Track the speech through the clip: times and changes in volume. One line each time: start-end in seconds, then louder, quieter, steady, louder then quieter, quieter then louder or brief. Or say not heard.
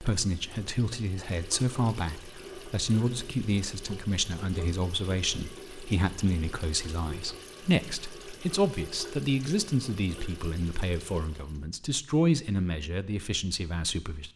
0.0-14.3 steady.